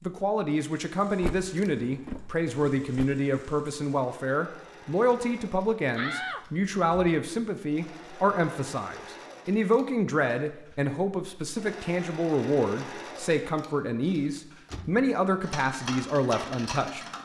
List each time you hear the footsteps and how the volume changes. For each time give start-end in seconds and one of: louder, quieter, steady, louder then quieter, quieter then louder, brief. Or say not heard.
not heard.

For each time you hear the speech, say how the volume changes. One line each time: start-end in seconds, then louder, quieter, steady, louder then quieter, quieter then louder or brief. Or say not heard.
0.0-17.1 steady.